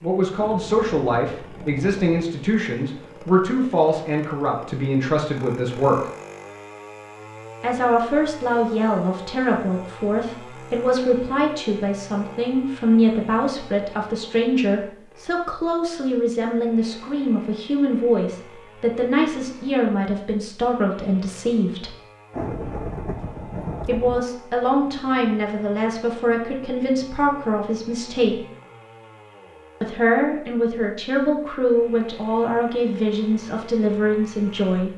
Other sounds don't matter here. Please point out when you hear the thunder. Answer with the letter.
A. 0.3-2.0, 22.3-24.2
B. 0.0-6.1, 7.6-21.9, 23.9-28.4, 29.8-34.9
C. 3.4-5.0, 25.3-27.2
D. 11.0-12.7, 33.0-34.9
A.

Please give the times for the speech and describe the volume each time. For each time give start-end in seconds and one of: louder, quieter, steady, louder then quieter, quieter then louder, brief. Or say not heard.
0.0-6.1 steady
7.6-21.9 steady
23.9-28.4 steady
29.8-34.9 steady.